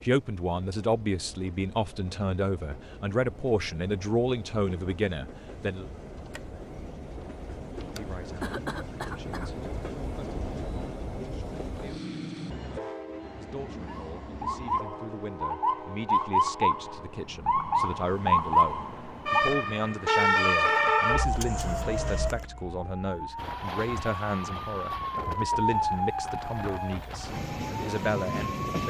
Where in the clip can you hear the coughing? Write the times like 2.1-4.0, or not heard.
8.4-9.5.